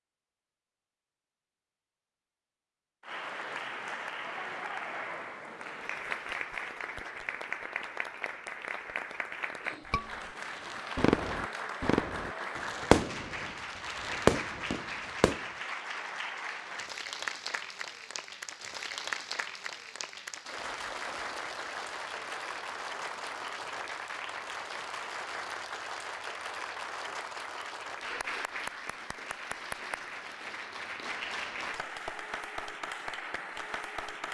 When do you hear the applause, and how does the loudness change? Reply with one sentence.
You can hear the applause from 3.0 to 34.2 s, at a steady volume.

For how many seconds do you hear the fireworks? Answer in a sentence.
You can hear the fireworks for 5 seconds altogether.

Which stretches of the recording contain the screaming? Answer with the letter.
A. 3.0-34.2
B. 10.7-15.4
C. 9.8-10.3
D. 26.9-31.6
C.